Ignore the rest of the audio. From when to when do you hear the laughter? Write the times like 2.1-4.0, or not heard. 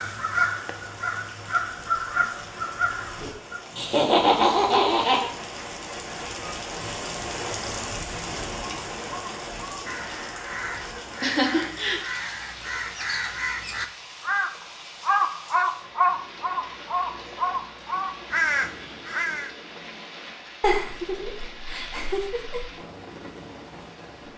3.8-5.3, 11.2-12.0, 20.6-22.6.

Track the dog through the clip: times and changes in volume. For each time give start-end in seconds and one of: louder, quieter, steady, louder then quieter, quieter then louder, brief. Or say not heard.
not heard.